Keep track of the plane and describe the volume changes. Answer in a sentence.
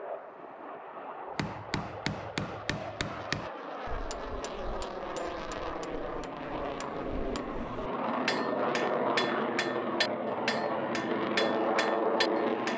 The loudness of the plane goes up.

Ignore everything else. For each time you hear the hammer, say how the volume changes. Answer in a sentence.
You can hear the hammer from 1.4 to 12.7 s, getting quieter then louder.